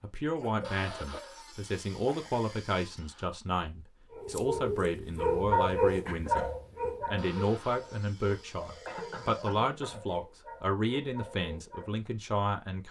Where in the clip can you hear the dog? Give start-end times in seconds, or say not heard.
4.1-12.1.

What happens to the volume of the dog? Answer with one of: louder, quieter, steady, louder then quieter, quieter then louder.
quieter.